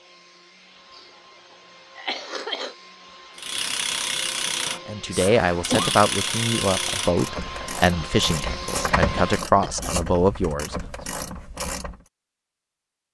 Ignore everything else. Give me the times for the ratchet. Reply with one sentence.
The ratchet can be heard from 3.4 to 12.0 s.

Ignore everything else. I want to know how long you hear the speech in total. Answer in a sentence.
The speech can be heard for 6 seconds in total.